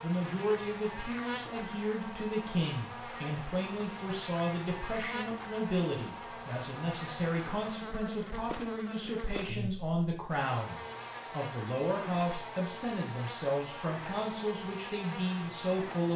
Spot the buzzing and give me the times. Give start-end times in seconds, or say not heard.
0.0-16.1.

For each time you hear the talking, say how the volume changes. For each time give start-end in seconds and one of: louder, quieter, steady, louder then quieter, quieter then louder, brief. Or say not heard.
0.0-16.1 steady.